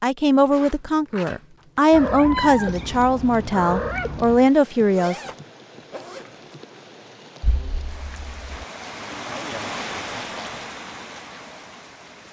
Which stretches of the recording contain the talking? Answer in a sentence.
You can hear the talking from 0.0 to 5.2 s.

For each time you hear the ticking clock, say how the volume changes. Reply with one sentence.
You can't hear the ticking clock here.